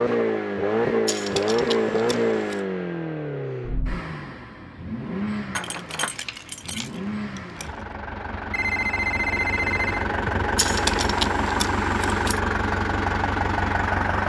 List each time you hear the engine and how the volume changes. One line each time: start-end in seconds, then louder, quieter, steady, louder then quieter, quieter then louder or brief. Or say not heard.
0.0-14.2 quieter then louder.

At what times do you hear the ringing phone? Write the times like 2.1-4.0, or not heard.
8.5-10.1.